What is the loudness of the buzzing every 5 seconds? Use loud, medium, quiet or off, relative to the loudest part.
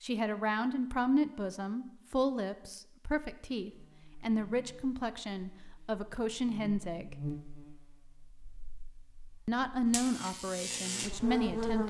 quiet, medium, loud.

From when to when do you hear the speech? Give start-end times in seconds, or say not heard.
0.0-7.2, 9.4-11.8.